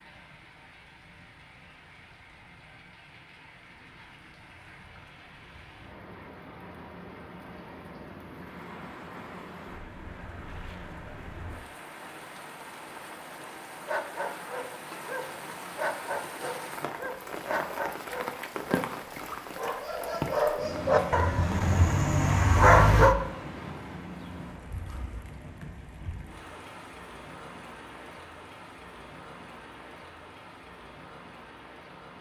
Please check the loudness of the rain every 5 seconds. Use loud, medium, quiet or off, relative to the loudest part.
quiet, medium, medium, loud, loud, medium, medium.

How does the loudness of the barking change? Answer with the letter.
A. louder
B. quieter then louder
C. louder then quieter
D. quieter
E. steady
A.